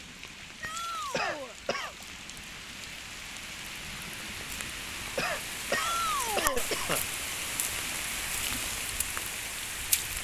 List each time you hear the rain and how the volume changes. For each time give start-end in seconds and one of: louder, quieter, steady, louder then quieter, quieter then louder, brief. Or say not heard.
0.0-10.1 louder.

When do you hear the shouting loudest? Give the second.
6 s.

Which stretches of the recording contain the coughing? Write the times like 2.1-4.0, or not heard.
1.1-1.9, 5.2-7.0.